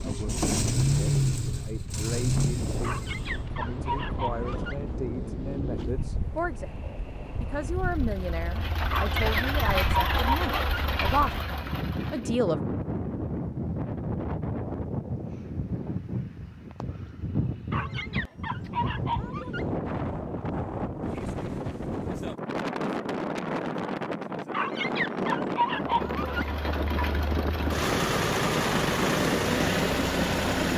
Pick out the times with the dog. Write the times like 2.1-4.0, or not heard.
2.8-4.8, 8.9-10.8, 17.7-19.6, 24.5-26.4.